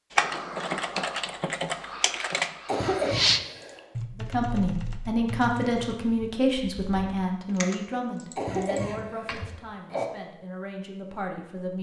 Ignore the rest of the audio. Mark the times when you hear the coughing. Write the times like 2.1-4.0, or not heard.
2.6-3.9, 8.3-10.1.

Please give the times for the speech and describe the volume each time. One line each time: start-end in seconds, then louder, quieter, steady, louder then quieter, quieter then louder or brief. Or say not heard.
4.2-11.7 quieter.